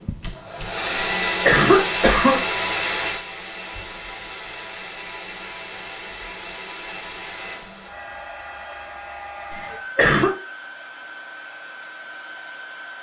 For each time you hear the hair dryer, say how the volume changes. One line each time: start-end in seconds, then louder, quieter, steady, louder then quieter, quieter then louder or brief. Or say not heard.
0.0-12.9 quieter.